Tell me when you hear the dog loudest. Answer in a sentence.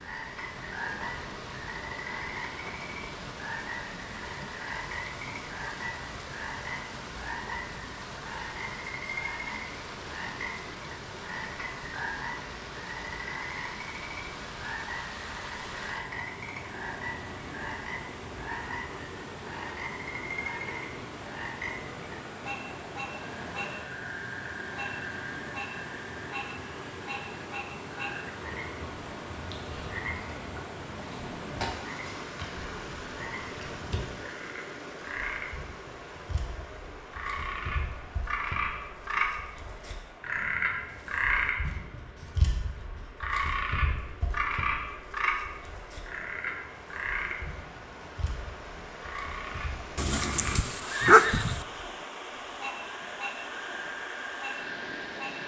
The volume of the dog peaks at 51 seconds.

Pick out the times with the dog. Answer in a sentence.
The dog can be heard from 50.0 to 51.6 s.